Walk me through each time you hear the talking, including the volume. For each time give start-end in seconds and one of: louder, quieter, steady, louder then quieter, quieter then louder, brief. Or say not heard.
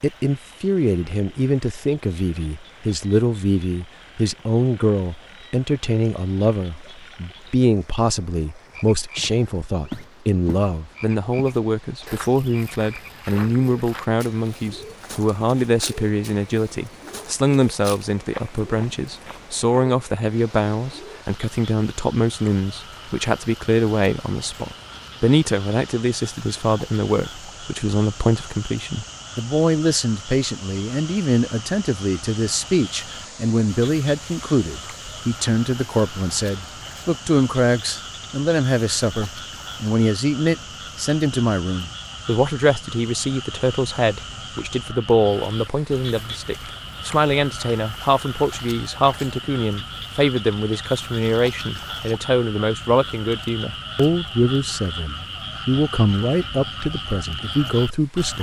0.0-58.3 steady.